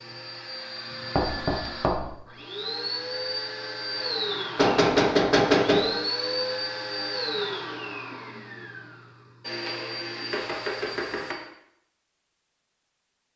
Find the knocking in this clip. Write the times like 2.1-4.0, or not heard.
1.1-2.1, 4.5-5.8, 10.3-11.3.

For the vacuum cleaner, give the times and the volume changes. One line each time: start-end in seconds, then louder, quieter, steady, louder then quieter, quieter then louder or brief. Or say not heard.
0.0-11.5 louder then quieter.